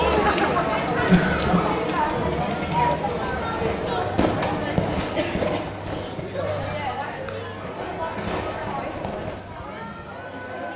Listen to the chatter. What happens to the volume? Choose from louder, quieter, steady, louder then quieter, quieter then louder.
quieter.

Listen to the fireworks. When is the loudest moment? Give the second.
5 s.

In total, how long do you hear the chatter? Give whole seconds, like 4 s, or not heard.
11 s.